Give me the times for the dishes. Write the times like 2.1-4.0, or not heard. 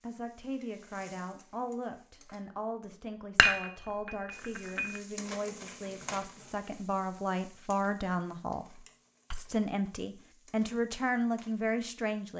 3.4-5.0.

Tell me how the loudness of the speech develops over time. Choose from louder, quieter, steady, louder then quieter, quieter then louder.
louder.